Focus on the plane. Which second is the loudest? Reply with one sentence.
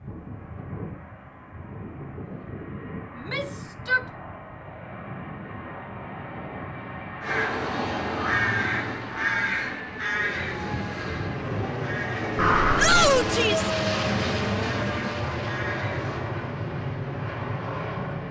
The volume of the plane peaks at 14 seconds.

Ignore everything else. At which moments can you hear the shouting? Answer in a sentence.
You can hear the shouting from 3.1 to 4.0 s and from 12.8 to 13.7 s.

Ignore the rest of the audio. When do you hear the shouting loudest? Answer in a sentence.
The volume of the shouting peaks at 13 seconds.